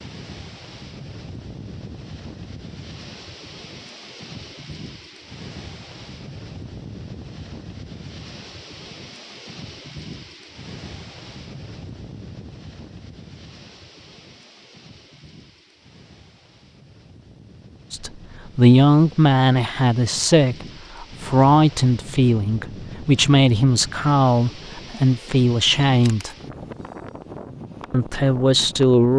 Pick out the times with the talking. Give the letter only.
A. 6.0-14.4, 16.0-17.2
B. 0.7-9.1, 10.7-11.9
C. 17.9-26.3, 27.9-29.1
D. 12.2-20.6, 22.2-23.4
C.